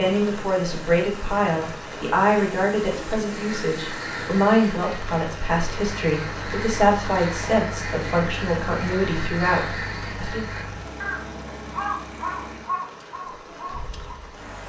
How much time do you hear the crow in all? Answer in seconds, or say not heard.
11 s.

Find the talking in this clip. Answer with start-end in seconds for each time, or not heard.
0.0-10.4.